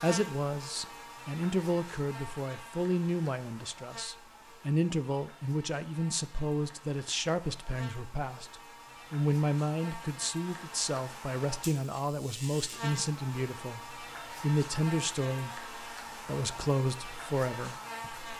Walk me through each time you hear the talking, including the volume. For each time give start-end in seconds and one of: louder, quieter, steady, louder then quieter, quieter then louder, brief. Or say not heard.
0.0-18.3 steady.